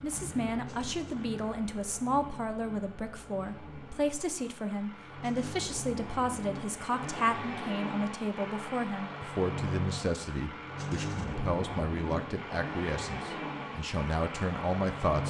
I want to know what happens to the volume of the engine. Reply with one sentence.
The volume of the engine goes up.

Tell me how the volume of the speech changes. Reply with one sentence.
The loudness of the speech stays about the same.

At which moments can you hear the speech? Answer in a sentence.
You can hear the speech from 0.0 to 15.2 s.